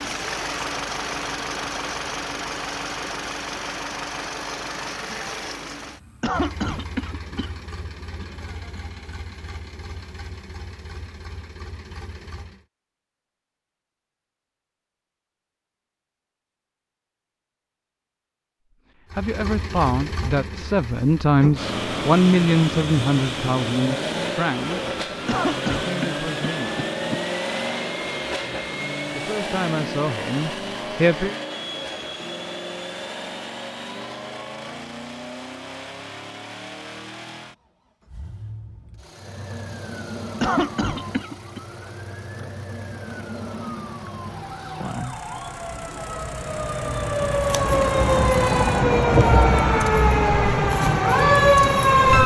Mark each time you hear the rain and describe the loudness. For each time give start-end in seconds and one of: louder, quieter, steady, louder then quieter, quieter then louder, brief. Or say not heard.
not heard.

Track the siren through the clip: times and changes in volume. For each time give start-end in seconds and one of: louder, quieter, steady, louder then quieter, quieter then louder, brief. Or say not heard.
39.1-52.2 louder.